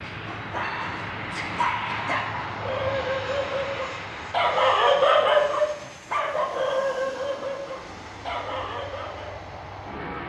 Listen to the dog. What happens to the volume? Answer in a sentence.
The volume of the dog goes up, then down.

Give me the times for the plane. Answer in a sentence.
The plane can be heard from 0.0 to 10.2 s.